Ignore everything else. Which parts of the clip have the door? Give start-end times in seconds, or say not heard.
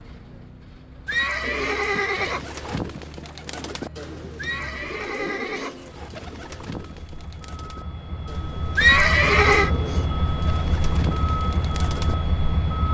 not heard.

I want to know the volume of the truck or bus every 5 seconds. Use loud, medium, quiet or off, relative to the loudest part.
quiet, medium, loud.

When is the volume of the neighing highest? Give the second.
9 s.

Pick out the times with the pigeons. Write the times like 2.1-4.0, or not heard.
1.4-12.2.